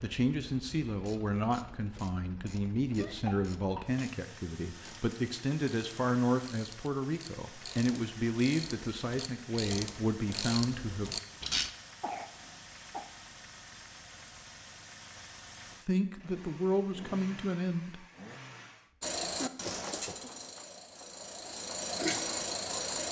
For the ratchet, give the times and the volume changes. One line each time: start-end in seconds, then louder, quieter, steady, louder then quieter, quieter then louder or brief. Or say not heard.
0.8-11.7 louder
19.0-23.0 quieter then louder.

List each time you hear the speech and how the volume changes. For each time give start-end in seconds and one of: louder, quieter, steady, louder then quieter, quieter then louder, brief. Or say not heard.
0.0-11.1 steady
15.8-18.1 brief.